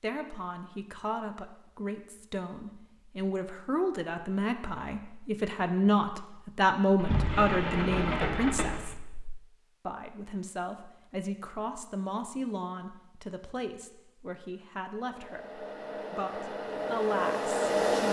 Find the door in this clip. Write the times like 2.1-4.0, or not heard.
7.0-9.4.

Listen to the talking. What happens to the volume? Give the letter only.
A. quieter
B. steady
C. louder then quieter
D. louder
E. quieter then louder
C.